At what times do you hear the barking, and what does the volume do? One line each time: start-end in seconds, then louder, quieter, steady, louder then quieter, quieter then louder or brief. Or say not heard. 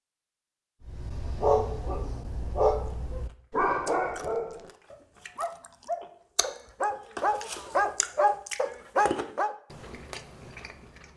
0.8-9.6 quieter then louder.